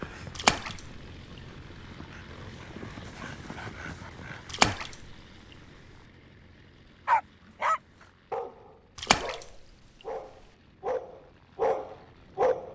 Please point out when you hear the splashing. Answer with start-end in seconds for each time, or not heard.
0.3-0.8, 4.5-5.0, 8.9-9.4.